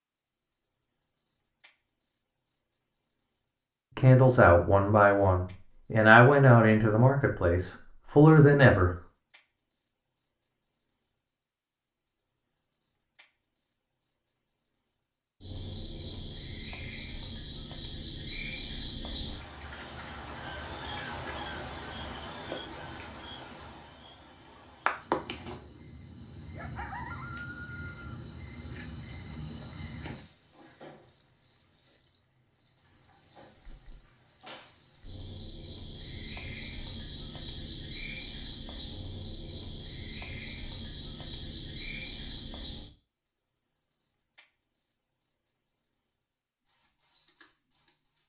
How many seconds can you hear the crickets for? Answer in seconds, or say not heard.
48 s.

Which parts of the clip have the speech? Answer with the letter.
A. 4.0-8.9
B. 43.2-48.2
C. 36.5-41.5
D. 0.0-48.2
A.